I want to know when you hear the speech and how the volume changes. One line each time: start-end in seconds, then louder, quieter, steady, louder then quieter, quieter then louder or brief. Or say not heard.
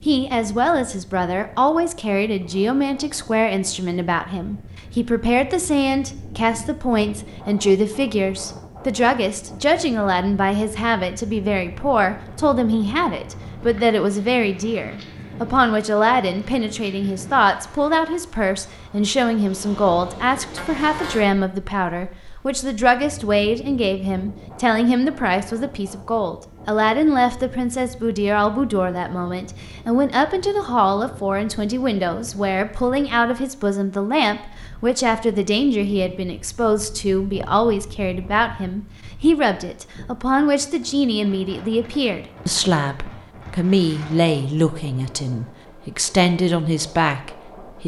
0.1-47.8 steady.